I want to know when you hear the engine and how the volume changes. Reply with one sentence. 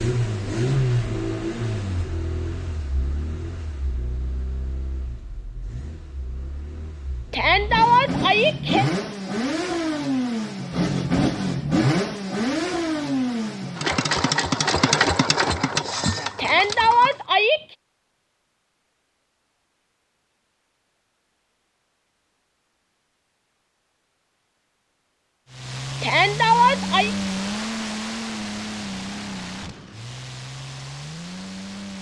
You can hear the engine from 0.0 to 17.1 s, getting quieter then louder; and from 25.4 to 31.9 s, getting quieter.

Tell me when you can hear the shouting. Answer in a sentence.
You can hear the shouting from 7.3 to 8.8 s, from 16.4 to 17.6 s and from 26.0 to 27.1 s.